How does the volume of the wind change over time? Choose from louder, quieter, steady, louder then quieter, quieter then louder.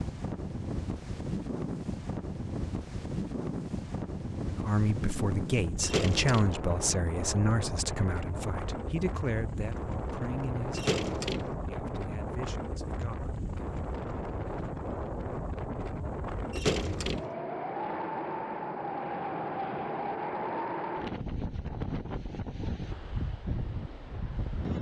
steady.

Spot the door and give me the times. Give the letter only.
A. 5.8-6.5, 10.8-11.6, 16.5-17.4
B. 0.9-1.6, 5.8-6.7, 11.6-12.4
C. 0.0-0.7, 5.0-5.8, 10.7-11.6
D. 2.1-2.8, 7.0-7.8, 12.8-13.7
A.